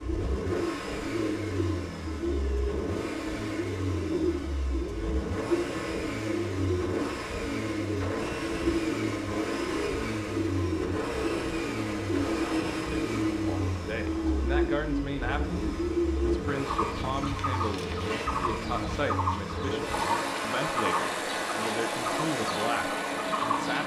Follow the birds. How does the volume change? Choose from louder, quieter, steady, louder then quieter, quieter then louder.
steady.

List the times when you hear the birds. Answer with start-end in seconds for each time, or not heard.
0.0-23.8.